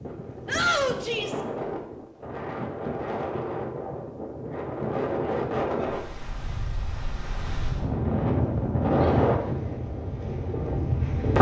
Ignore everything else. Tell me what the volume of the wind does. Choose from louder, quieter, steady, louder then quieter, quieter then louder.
louder.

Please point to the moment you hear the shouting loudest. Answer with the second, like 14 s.
1 s.